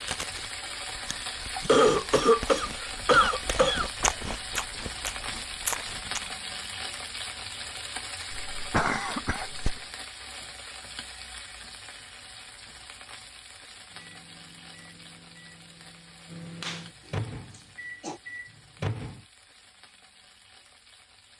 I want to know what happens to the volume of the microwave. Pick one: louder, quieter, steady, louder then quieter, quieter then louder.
louder.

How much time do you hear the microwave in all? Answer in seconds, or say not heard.
5 s.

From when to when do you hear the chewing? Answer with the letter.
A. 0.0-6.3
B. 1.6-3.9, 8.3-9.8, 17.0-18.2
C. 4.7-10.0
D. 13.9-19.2
A.